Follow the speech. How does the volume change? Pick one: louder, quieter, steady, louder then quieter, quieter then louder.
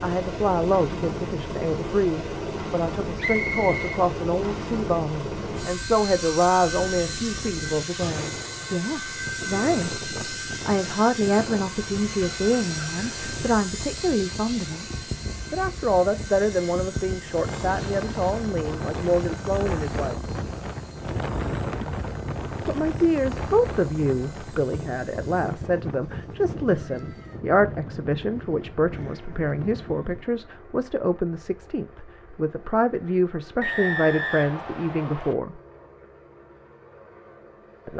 steady.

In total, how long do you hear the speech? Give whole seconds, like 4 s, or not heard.
33 s.